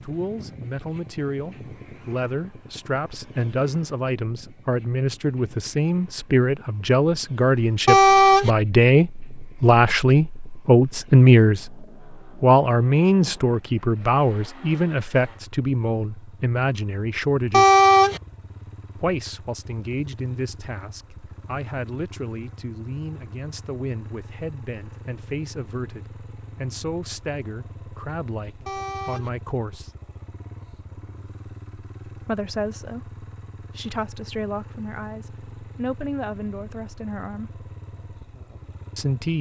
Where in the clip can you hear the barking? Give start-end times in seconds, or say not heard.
not heard.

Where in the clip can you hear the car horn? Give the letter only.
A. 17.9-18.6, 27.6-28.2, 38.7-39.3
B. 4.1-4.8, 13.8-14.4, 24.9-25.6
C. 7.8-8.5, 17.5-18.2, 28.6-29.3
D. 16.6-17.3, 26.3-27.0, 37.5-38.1
C.